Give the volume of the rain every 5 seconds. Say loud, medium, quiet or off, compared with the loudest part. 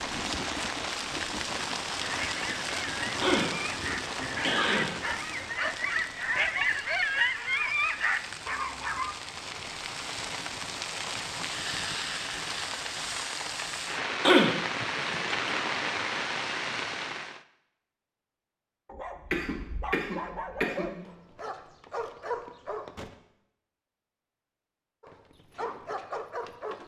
loud, medium, loud, loud, off, off.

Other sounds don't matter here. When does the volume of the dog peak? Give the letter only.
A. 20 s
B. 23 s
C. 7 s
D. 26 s
C.